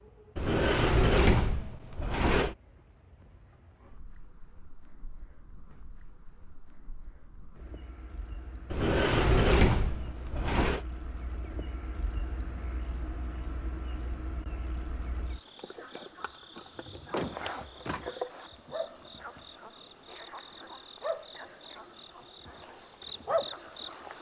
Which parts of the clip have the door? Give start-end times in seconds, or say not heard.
0.3-2.5, 8.7-10.8, 16.9-18.1.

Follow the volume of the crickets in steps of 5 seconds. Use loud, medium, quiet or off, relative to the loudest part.
quiet, quiet, medium, loud, loud.